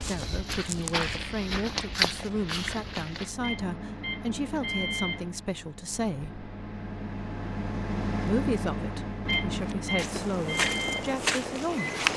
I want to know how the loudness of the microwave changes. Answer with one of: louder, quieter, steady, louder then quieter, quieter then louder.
louder.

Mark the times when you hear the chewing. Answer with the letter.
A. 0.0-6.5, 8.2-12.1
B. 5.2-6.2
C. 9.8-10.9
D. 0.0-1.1
D.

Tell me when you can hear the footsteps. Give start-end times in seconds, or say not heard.
0.0-3.3, 9.6-12.1.